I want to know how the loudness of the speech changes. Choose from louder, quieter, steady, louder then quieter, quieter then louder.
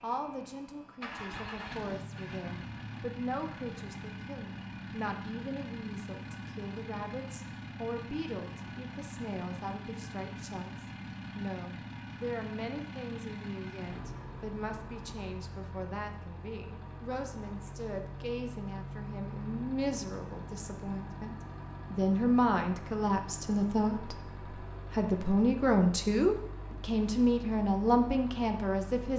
louder.